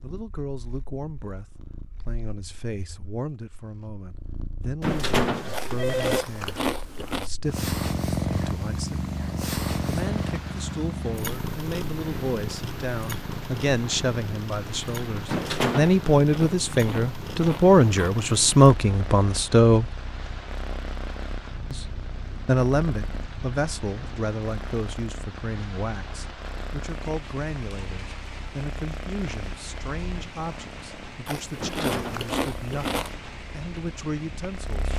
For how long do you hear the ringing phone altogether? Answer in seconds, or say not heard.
3 s.